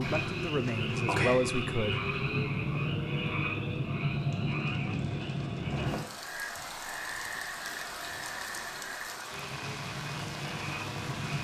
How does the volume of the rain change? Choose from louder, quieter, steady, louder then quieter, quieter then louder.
steady.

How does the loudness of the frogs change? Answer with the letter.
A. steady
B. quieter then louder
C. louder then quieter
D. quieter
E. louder
D.